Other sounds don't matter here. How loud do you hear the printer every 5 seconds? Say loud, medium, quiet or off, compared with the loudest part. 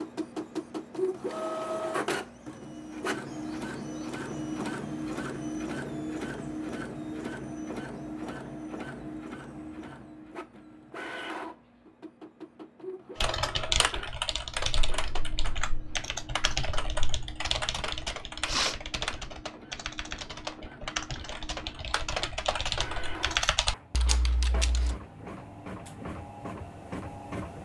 loud, loud, medium, quiet, medium, medium.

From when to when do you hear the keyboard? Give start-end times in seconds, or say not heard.
13.2-25.0.